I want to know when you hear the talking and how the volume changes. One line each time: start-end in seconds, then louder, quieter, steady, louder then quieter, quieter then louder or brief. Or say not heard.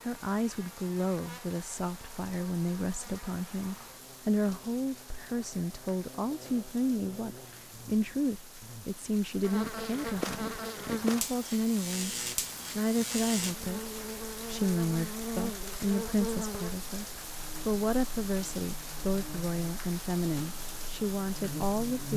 0.0-12.2 steady
12.8-22.1 steady.